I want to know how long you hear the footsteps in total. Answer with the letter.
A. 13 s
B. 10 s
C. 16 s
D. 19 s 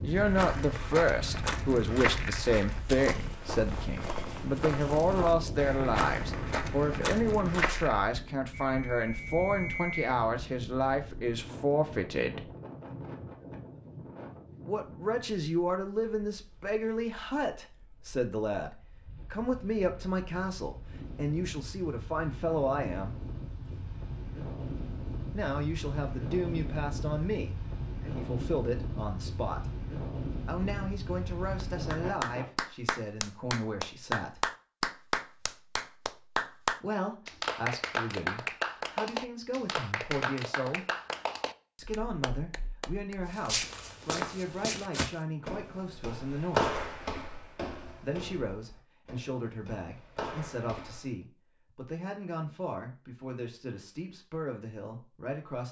C.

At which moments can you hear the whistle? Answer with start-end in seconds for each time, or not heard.
8.5-10.2.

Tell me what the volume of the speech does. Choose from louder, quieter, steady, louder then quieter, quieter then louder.
quieter.